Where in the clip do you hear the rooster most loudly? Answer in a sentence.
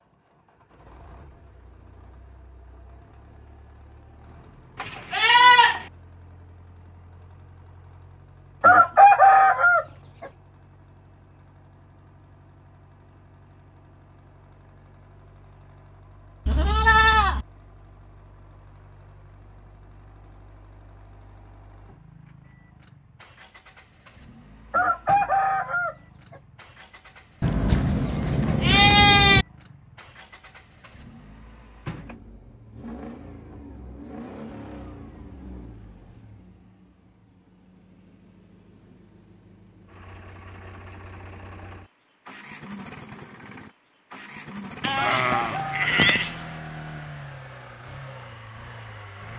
The volume of the rooster peaks at 9 seconds.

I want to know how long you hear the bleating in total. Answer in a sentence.
You can hear the bleating for 6 seconds altogether.